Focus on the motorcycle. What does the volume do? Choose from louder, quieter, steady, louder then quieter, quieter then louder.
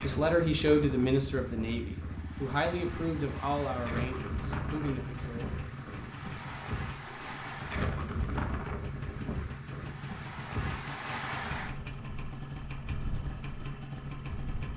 steady.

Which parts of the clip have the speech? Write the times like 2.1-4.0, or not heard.
0.0-5.5.